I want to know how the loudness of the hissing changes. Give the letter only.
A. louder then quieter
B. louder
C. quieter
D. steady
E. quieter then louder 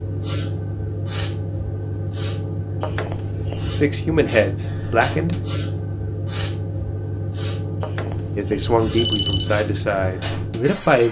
D.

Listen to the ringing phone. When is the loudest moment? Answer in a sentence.
The loudest moment of the ringing phone is at 9 seconds.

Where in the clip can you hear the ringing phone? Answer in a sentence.
The ringing phone can be heard from 2.8 to 3.8 s and from 7.8 to 9.5 s.